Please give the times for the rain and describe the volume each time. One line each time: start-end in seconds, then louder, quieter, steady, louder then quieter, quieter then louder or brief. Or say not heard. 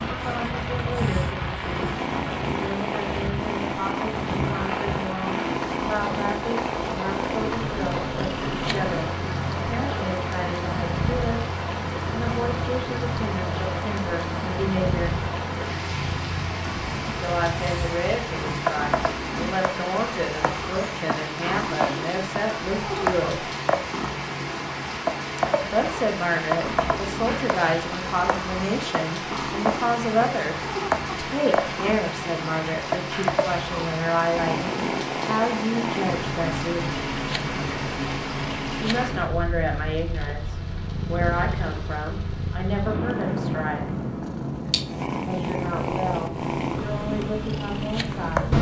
0.0-48.5 steady.